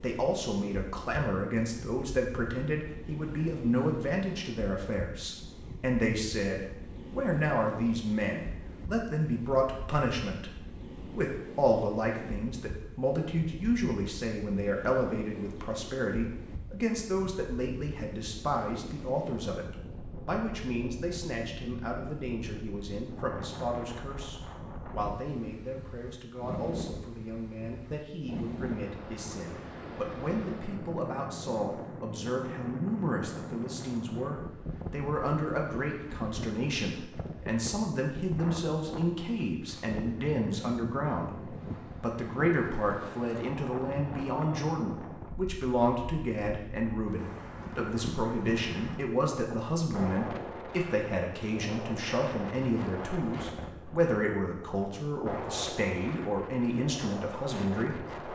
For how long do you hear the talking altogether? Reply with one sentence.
The talking can be heard for 58 seconds in total.